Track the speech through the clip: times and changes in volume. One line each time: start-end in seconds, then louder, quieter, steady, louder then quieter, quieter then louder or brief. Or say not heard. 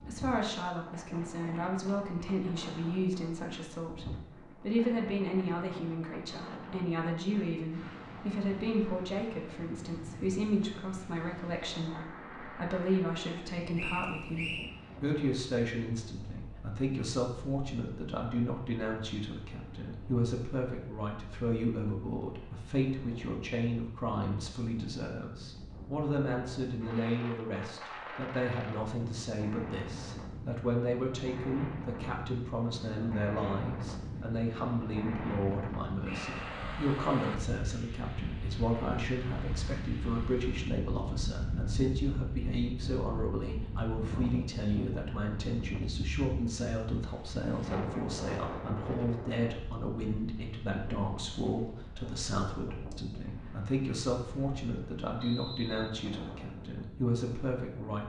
0.1-58.0 steady.